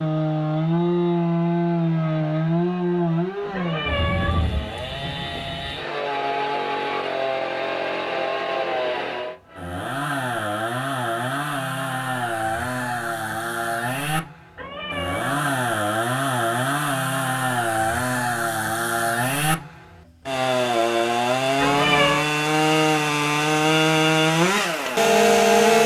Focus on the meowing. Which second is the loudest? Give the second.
22 s.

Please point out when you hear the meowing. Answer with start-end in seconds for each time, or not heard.
3.5-4.5, 14.6-15.6, 21.6-22.2.